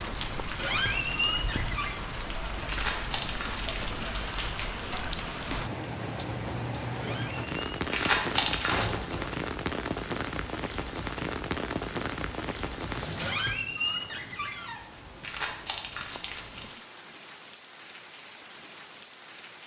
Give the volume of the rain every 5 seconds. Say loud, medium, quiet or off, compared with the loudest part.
loud, loud, loud, quiet.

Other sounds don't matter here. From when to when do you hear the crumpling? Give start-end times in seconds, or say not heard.
2.6-4.7, 7.9-8.9, 15.2-16.8.